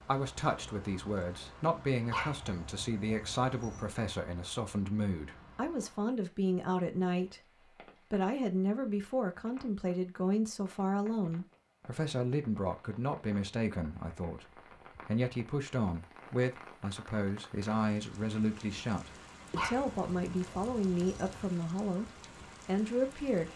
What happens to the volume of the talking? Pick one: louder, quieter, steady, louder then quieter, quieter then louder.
steady.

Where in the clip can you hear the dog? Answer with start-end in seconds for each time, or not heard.
2.1-4.0, 19.6-21.5.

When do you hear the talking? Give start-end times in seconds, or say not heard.
0.1-23.5.